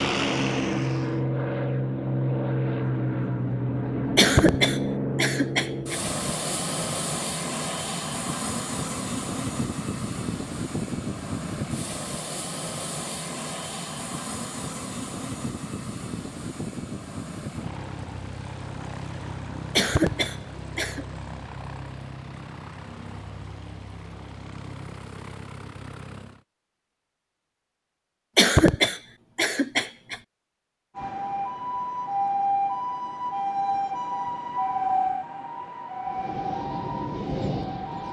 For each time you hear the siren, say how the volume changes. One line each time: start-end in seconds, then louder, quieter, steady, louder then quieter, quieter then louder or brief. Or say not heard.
30.9-38.0 quieter.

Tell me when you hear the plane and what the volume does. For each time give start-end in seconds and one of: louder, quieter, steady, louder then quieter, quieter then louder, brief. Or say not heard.
0.0-26.4 quieter
36.0-38.0 brief.